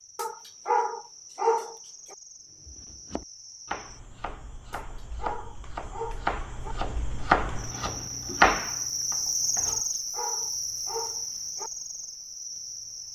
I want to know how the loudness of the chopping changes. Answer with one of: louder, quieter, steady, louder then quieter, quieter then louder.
louder.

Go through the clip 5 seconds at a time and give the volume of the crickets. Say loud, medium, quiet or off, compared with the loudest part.
quiet, loud, loud.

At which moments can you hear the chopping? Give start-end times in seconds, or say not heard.
2.6-9.8.